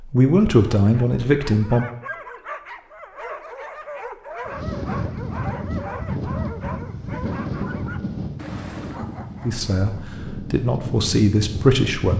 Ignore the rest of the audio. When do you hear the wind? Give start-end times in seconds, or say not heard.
4.5-12.1.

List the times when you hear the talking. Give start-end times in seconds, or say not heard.
0.0-1.9, 9.4-12.1.